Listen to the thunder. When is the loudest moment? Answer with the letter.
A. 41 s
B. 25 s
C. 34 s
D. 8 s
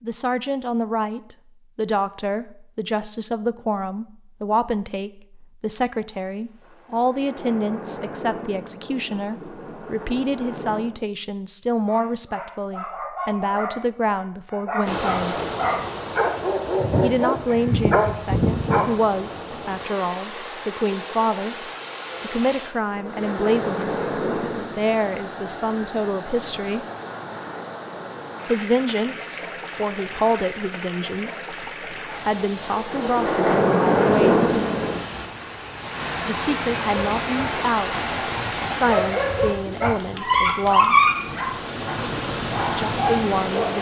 C.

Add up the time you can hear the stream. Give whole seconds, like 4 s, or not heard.
29 s.